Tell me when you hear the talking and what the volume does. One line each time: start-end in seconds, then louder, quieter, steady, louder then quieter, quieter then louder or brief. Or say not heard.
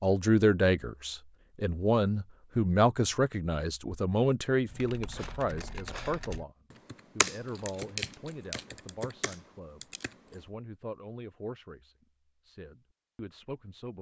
0.0-13.9 quieter.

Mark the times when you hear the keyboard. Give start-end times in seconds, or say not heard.
4.7-10.4.